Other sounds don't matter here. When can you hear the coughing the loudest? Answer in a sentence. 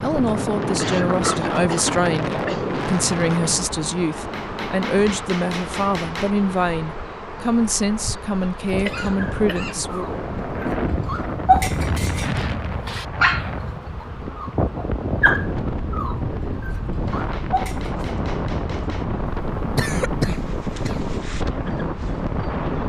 The loudest moment of the coughing is at 20 seconds.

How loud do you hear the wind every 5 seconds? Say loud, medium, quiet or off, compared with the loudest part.
loud, medium, loud, loud, loud.